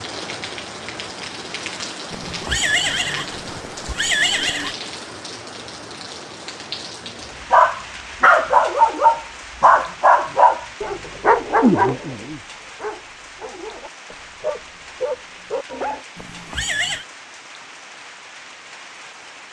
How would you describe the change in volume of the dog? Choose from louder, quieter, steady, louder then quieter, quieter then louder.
quieter then louder.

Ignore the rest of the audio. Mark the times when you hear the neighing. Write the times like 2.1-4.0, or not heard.
2.1-4.8, 16.1-17.1.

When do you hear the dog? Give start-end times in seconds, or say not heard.
7.5-16.1.